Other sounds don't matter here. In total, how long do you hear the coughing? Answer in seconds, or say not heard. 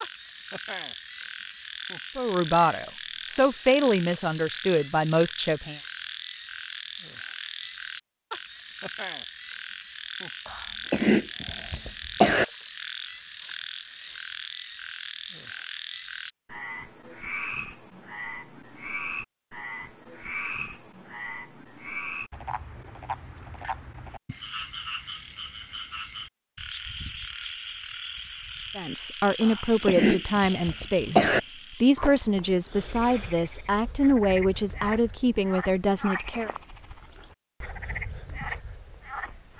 4 s.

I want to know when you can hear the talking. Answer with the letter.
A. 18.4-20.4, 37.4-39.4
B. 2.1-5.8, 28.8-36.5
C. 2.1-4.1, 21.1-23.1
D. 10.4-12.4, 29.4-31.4
B.